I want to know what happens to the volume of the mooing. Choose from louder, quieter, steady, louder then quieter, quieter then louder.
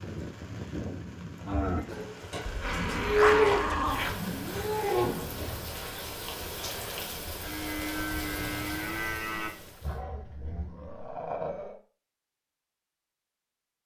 louder then quieter.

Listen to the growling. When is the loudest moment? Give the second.
3 s.